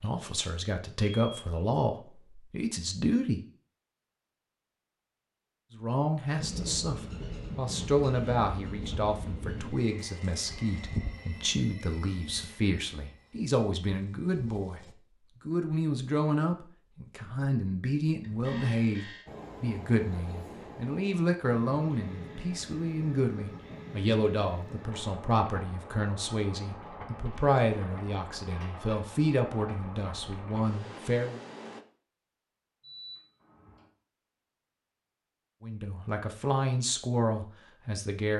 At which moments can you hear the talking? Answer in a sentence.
The talking can be heard from 0.0 to 3.4 s, from 5.8 to 31.4 s and from 35.6 to 38.3 s.